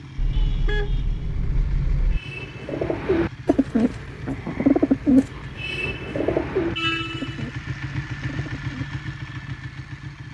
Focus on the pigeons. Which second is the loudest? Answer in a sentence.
The loudest moment of the pigeons is at 5 seconds.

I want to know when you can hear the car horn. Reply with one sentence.
You can hear the car horn from 0.1 to 2.2 s and from 6.8 to 7.5 s.